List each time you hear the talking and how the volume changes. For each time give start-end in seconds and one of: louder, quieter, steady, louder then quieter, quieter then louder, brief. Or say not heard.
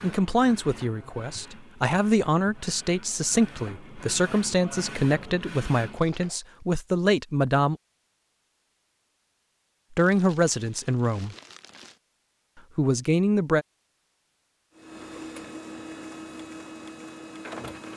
0.0-7.8 steady
9.9-11.3 brief
12.8-13.7 brief.